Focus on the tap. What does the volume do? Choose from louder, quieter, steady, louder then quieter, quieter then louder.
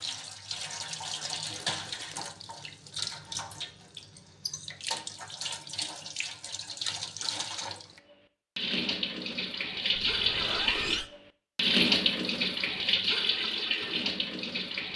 louder.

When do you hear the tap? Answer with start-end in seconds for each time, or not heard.
0.0-14.9.